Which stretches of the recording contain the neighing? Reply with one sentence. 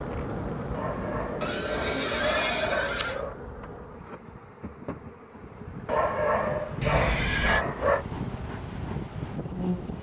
You can hear the neighing from 1.4 to 3.2 s and from 6.8 to 7.7 s.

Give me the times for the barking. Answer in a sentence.
The barking can be heard from 0.7 to 3.4 s and from 5.8 to 8.1 s.